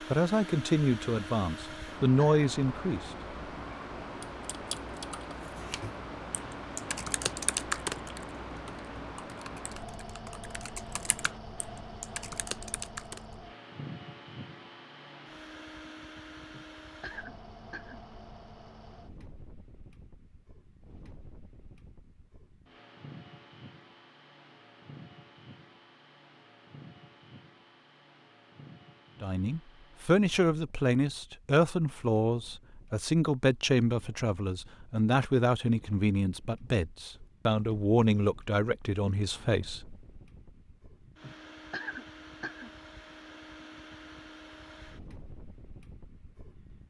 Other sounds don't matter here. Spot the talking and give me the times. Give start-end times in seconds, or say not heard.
0.1-3.1, 29.2-39.9.